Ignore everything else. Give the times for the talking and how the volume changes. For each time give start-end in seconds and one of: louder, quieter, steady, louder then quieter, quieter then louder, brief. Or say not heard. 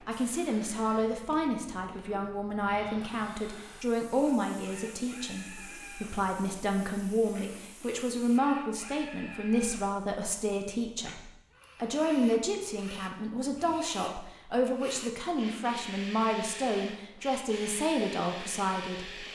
0.1-19.2 steady.